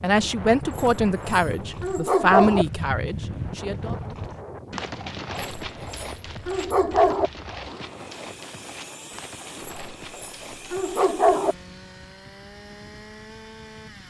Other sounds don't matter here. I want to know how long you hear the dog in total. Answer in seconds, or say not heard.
6 s.